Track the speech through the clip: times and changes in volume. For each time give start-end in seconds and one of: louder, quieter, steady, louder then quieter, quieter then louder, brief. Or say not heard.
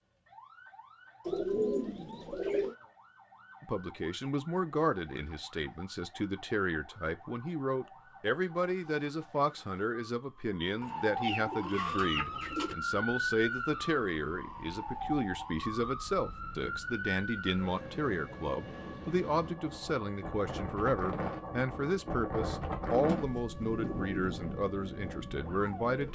3.6-26.0 steady.